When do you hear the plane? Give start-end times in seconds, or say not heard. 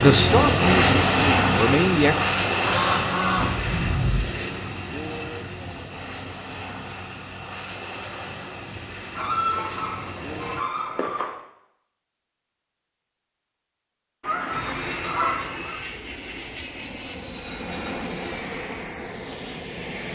0.0-10.7, 14.5-20.1.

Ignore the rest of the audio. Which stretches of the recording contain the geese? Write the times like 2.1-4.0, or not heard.
2.6-4.3, 9.2-11.3, 14.2-15.8.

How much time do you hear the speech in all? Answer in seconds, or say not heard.
2 s.